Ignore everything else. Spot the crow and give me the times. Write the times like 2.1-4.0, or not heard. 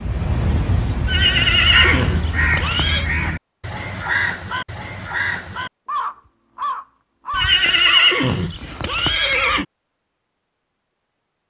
0.0-8.1.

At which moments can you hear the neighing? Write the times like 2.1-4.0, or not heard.
1.1-3.1, 7.3-9.7.